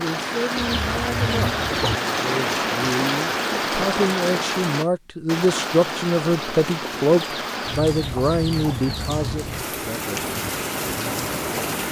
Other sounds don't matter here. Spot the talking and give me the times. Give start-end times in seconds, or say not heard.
0.0-10.2.